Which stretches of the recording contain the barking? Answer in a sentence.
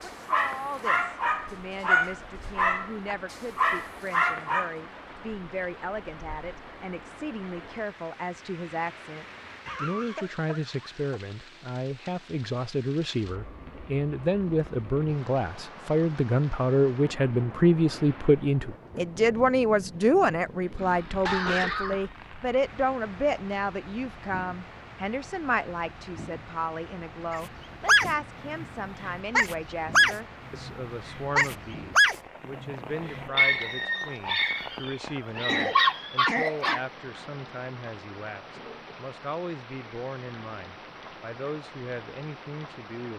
The barking can be heard from 0.3 to 4.8 s and from 27.3 to 36.8 s.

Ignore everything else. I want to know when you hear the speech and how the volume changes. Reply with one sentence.
The speech can be heard from 0.0 to 43.1 s, getting louder then quieter.